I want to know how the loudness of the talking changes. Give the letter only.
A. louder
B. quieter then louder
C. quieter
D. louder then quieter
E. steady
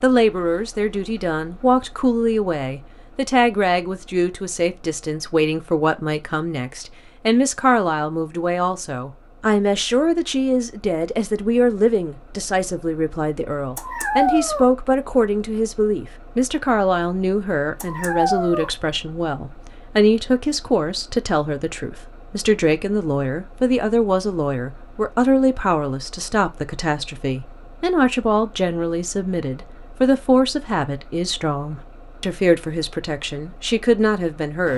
E.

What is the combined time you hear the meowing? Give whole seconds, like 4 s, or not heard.
2 s.